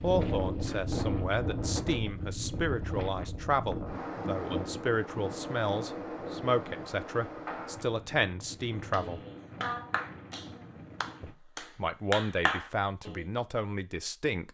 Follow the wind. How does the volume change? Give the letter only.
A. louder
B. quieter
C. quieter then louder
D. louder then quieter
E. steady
B.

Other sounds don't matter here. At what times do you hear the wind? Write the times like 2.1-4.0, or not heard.
0.0-11.3.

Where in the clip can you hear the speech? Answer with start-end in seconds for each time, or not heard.
0.0-9.2, 11.2-14.4.